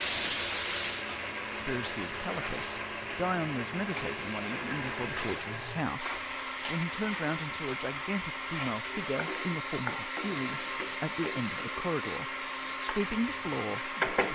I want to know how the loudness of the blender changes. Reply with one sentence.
The volume of the blender stays about the same.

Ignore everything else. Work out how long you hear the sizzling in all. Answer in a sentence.
The sizzling can be heard for 14 seconds in total.